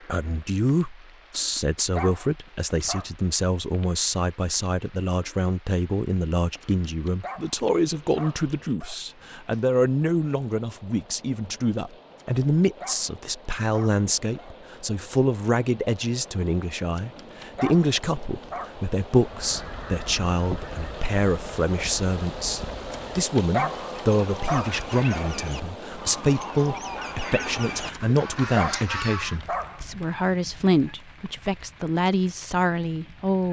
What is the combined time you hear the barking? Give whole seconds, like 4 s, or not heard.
13 s.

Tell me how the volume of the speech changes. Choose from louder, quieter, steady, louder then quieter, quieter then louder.
steady.